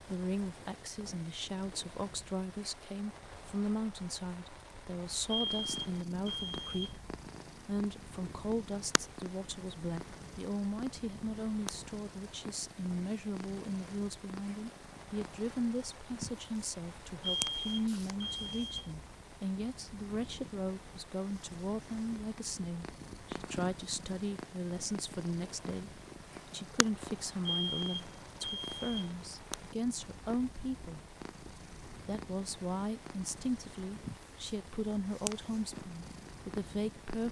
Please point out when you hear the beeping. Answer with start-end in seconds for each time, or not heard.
5.3-7.0, 17.2-18.9, 27.4-29.1.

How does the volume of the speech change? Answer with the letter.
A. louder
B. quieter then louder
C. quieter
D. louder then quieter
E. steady
E.